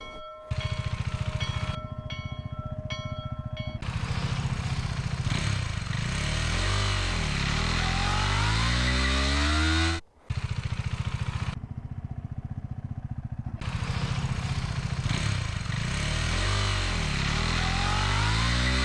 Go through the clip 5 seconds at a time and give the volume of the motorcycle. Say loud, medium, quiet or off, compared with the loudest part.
medium, loud, medium, loud.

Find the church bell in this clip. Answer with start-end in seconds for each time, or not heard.
0.0-3.8.